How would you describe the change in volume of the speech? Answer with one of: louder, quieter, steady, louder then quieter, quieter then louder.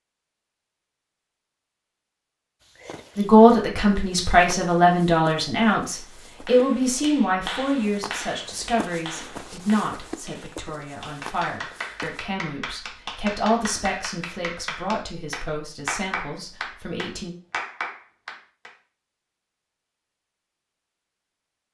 quieter.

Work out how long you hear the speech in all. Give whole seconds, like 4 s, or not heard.
14 s.